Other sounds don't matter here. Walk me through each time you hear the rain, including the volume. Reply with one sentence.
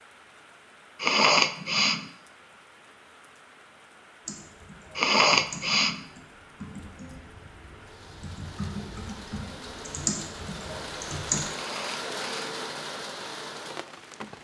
The rain can be heard from 0.0 to 14.3 s, getting louder.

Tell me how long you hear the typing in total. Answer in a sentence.
You can hear the typing for 7 seconds altogether.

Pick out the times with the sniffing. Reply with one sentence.
You can hear the sniffing from 1.0 to 2.0 s, from 5.0 to 6.0 s and from 11.5 to 12.6 s.